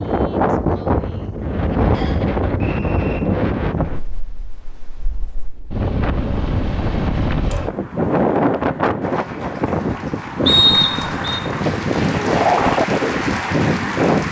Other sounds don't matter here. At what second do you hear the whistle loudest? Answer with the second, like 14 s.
11 s.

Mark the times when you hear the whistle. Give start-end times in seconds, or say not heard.
1.9-3.2, 10.4-11.4.